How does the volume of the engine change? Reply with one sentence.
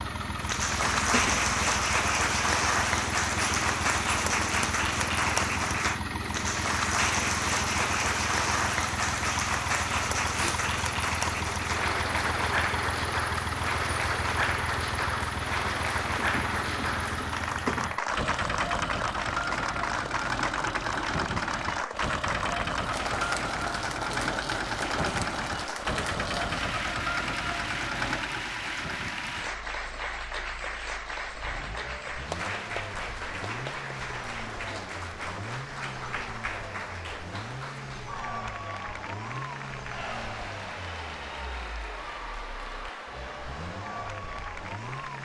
The volume of the engine goes down.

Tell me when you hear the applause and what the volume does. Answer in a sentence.
The applause can be heard from 0.2 to 45.2 s, getting quieter.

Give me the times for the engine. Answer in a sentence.
You can hear the engine from 0.0 to 45.2 s.